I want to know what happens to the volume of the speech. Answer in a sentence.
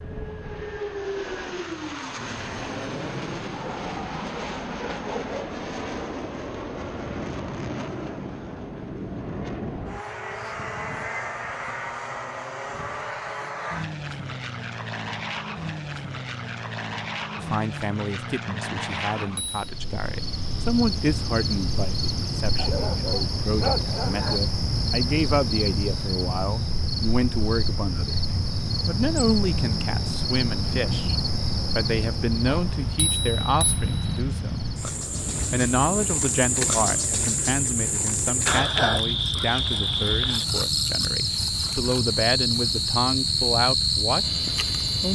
The loudness of the speech stays about the same.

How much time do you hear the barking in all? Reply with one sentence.
The barking can be heard for 4 seconds in total.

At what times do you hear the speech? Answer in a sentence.
You can hear the speech from 17.4 to 34.8 s and from 35.5 to 44.2 s.